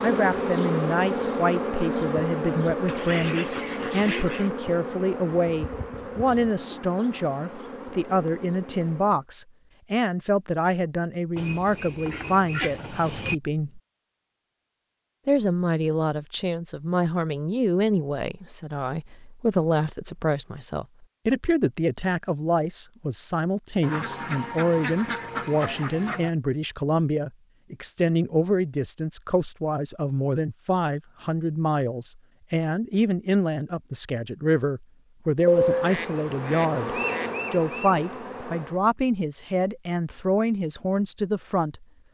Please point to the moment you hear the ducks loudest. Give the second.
36 s.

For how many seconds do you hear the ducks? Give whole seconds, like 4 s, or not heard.
8 s.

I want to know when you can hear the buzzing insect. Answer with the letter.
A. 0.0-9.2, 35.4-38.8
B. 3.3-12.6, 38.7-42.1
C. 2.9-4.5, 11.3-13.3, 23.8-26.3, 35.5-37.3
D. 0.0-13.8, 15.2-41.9
A.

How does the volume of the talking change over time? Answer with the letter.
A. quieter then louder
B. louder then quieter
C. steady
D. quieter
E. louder
C.